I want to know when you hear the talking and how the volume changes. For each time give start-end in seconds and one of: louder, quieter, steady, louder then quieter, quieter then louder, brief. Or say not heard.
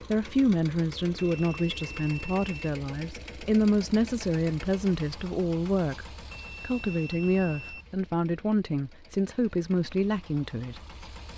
0.1-10.8 steady.